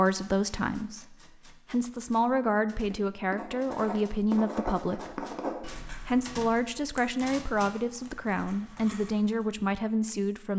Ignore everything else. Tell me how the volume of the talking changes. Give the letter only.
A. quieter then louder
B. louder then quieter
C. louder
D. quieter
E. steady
E.